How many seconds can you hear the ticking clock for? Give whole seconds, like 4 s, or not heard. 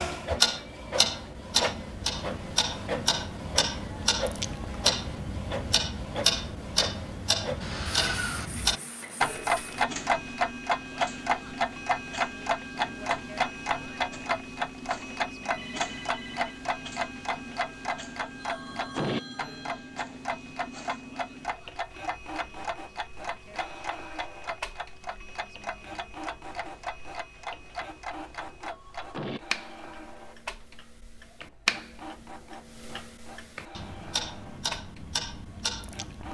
36 s.